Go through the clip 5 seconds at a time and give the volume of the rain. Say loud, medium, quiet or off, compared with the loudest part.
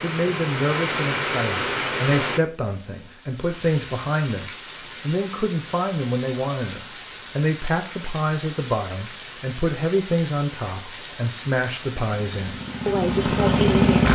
loud, medium, medium.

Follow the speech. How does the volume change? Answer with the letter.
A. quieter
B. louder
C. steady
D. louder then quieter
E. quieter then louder
C.